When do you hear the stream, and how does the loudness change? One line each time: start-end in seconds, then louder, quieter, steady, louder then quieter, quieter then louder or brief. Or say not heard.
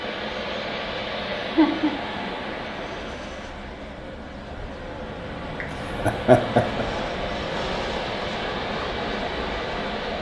0.0-10.1 quieter then louder.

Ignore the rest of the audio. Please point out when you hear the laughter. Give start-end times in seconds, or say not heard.
1.4-1.9, 6.0-6.8.